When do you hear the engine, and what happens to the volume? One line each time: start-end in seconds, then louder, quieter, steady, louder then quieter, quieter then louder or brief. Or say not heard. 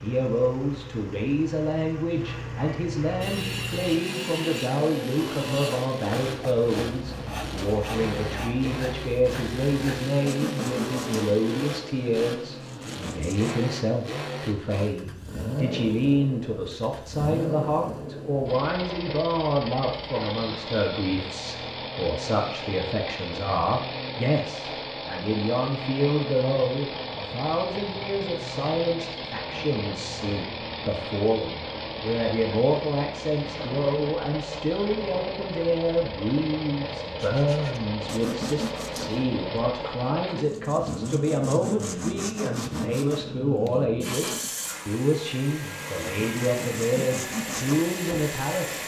0.0-48.8 steady.